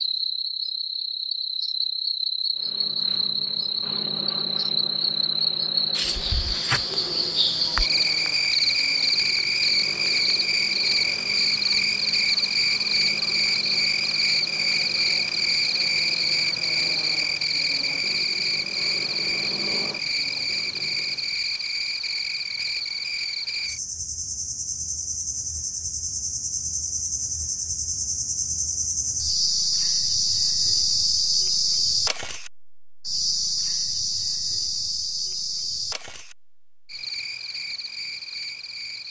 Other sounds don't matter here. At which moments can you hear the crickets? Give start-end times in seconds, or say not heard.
0.0-39.0.